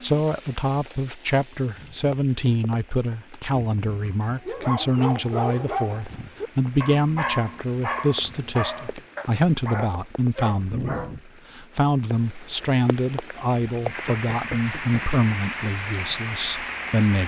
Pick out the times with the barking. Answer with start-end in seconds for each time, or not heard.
4.2-11.2.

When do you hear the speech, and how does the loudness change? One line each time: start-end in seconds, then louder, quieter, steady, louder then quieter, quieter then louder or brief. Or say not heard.
0.0-17.2 steady.